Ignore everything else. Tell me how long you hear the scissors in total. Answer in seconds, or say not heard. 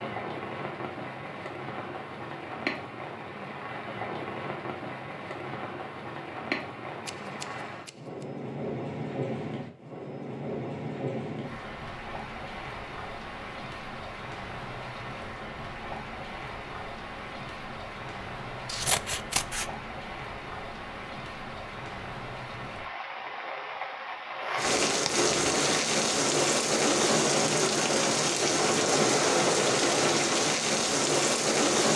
2 s.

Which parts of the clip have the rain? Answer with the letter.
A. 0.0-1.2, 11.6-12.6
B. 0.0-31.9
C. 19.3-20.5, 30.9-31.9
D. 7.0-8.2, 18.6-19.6
B.